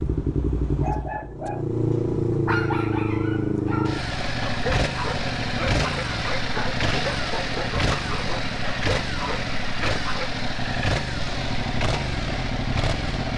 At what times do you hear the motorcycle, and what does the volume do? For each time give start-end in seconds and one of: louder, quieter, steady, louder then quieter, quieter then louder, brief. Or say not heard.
0.0-13.3 steady.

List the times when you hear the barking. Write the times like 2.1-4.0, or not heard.
0.7-10.3.